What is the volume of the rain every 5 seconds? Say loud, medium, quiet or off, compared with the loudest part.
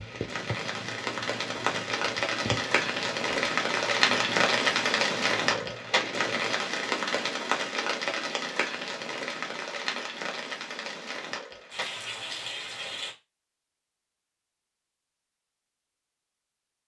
loud, loud, medium, off.